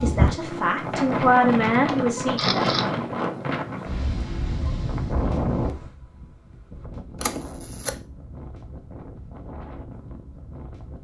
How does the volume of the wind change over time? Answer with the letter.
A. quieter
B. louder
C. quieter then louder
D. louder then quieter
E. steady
A.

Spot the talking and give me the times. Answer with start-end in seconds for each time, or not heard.
0.0-2.8.